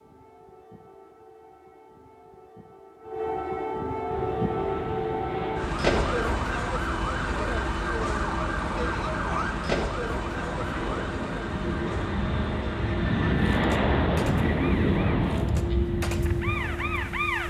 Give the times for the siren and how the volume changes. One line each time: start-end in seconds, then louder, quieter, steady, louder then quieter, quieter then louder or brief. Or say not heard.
0.0-17.4 louder then quieter.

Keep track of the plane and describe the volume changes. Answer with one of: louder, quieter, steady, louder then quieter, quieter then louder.
louder.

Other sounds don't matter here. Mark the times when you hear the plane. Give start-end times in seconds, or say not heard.
4.0-17.4.